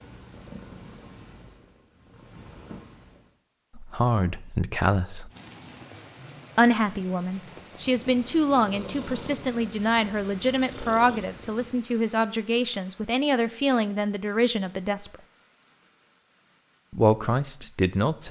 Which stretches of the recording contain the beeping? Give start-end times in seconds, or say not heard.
not heard.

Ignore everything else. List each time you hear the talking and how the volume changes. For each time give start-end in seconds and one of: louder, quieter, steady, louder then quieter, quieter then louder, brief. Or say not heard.
3.8-5.3 brief
6.5-15.2 steady
16.9-18.2 brief.